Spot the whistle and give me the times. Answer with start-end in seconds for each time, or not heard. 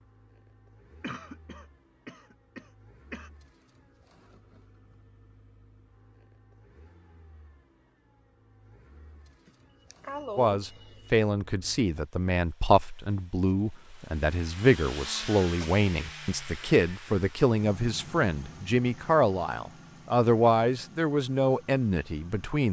not heard.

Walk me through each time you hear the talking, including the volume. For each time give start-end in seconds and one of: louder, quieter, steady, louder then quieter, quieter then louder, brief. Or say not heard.
10.3-22.6 steady.